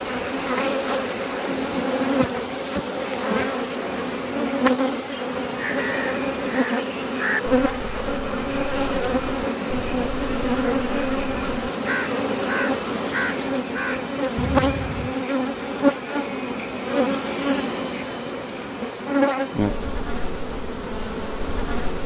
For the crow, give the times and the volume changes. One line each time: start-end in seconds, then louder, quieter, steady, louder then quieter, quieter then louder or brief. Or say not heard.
5.5-15.2 quieter then louder.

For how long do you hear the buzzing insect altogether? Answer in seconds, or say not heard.
22 s.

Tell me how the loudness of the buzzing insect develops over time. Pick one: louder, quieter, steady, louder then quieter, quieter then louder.
steady.